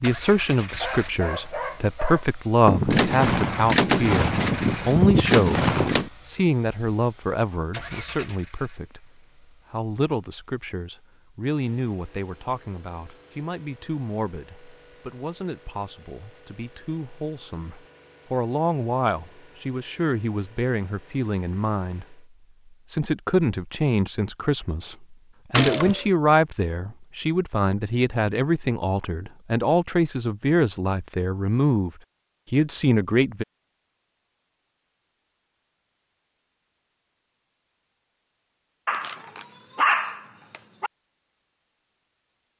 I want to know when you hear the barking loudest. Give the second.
40 s.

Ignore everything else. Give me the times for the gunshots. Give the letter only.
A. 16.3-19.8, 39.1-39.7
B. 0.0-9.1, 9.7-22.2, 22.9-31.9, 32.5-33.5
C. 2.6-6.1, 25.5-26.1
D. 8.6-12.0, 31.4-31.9
C.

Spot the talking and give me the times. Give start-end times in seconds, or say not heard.
0.0-9.1, 9.7-22.2, 22.9-31.9, 32.5-33.5.